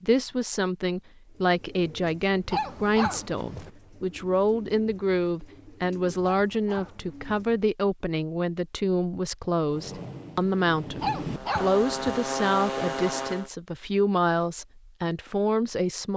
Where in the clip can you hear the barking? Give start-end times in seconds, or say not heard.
2.5-3.7, 6.3-7.3, 11.0-12.2.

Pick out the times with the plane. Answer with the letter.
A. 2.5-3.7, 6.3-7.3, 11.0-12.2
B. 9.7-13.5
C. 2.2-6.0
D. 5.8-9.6
B.